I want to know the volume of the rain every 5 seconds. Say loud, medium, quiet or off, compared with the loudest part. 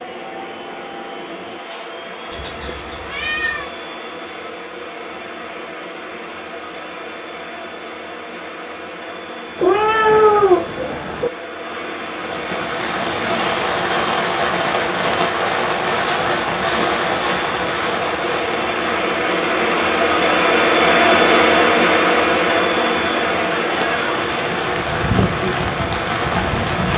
off, off, loud, loud, medium, loud.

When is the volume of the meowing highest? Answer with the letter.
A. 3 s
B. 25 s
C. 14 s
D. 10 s
D.